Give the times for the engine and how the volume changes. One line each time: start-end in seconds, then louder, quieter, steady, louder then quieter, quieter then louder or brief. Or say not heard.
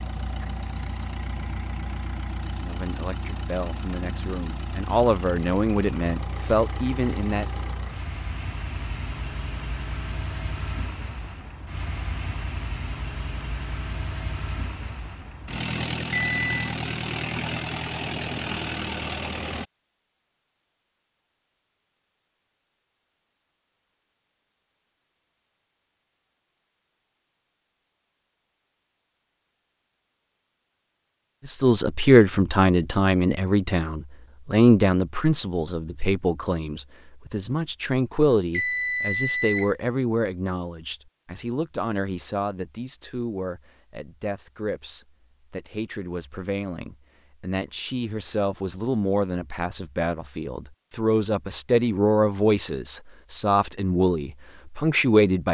0.0-19.6 louder.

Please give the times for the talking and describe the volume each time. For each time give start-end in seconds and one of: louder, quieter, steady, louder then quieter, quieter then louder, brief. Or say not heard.
2.6-7.7 louder
31.4-55.4 quieter then louder.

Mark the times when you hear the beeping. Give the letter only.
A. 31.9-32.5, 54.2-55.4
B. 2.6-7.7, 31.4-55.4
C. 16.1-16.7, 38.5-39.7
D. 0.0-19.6
C.